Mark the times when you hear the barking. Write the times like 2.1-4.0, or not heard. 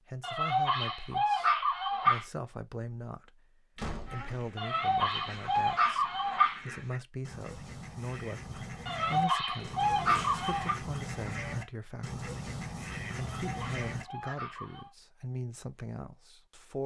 0.2-2.2, 4.5-6.7, 8.8-10.8, 13.2-14.9.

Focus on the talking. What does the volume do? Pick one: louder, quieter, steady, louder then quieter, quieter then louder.
steady.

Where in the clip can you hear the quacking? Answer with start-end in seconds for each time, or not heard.
4.0-14.3.